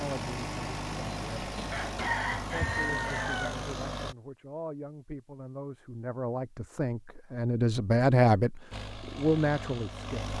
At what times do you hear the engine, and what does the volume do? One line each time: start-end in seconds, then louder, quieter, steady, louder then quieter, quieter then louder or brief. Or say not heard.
0.0-4.2 steady
8.7-10.3 brief.